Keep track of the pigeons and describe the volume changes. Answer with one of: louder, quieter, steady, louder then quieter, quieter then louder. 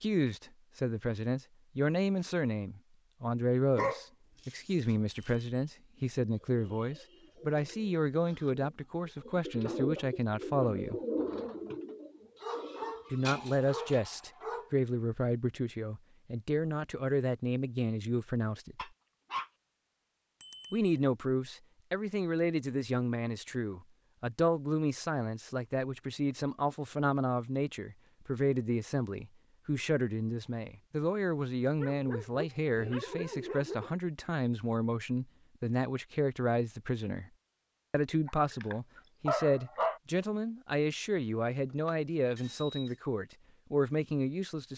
louder then quieter.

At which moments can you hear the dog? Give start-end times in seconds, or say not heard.
3.8-4.7, 12.4-14.7, 18.8-19.5, 31.8-33.9, 38.2-40.0.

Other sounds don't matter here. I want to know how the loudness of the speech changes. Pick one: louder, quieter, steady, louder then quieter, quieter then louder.
steady.